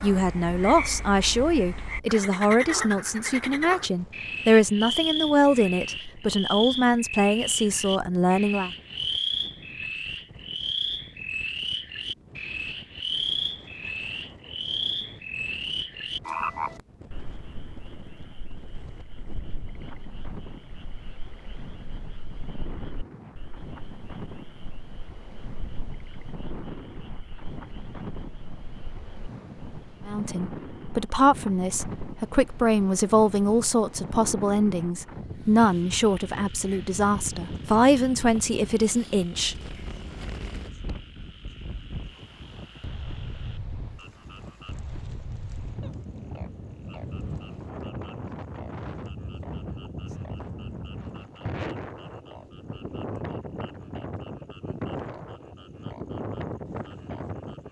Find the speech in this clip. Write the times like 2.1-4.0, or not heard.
0.0-8.7, 30.1-39.8.